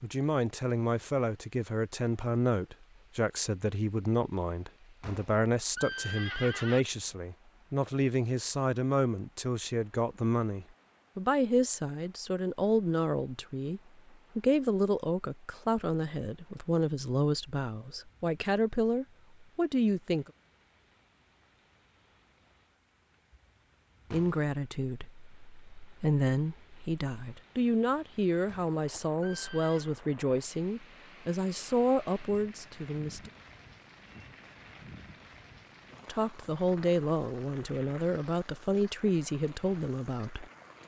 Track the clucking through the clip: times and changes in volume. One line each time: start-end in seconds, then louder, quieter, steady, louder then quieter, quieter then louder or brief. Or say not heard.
not heard.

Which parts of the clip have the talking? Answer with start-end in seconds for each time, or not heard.
0.0-20.3, 24.1-33.3, 36.0-40.5.